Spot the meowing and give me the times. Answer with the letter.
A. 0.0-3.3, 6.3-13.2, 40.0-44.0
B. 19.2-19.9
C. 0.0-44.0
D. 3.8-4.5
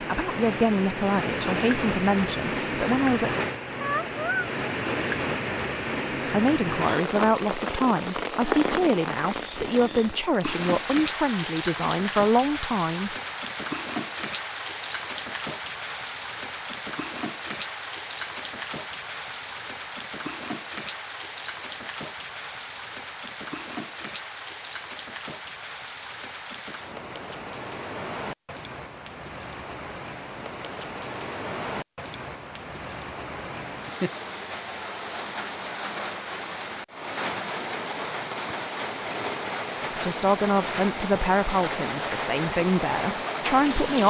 D.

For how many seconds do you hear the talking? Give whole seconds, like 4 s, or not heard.
14 s.